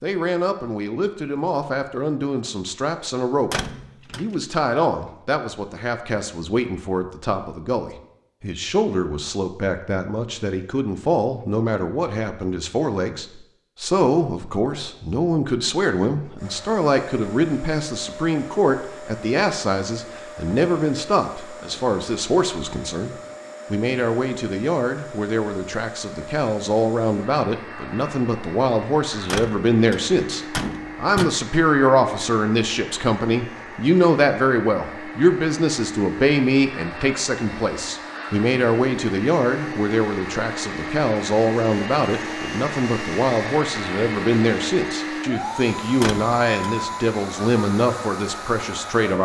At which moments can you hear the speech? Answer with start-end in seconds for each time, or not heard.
0.0-49.2.